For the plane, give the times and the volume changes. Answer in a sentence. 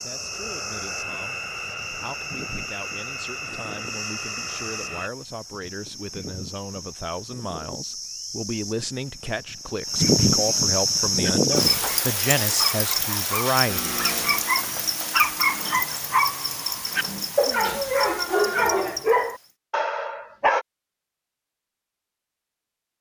The plane can be heard from 0.0 to 5.1 s, at a steady volume; and briefly from 13.7 to 16.6 s.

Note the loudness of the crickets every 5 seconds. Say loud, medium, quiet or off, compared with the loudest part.
quiet, quiet, loud, medium, off.